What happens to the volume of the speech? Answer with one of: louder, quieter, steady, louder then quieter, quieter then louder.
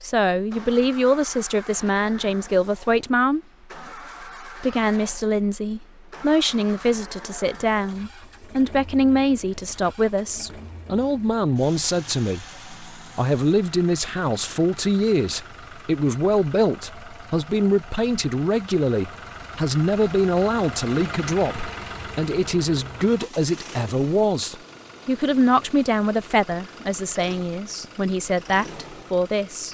steady.